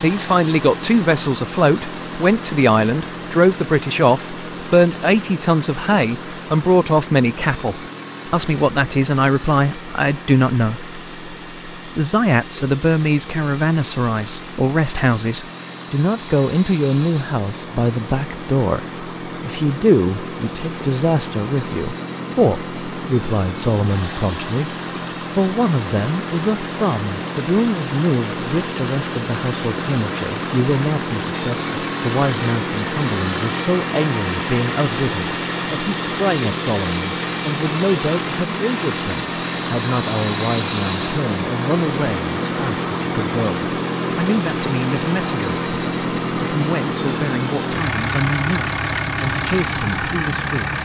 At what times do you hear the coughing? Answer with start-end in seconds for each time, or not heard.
not heard.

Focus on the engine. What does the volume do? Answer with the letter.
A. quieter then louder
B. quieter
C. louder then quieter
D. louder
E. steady
D.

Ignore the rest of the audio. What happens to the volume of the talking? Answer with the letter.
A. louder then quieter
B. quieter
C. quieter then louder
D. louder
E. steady
B.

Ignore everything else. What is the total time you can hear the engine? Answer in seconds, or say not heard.
51 s.